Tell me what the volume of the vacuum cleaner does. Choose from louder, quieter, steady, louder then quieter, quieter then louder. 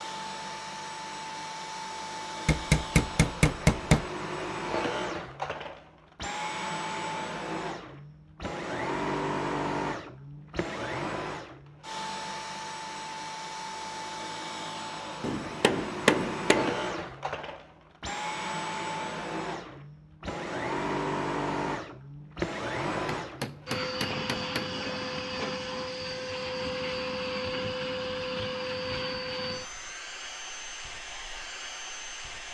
steady.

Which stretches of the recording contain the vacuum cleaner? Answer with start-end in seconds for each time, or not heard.
0.0-32.4.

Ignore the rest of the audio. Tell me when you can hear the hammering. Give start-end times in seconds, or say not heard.
2.5-4.0, 15.2-16.8, 23.1-24.7.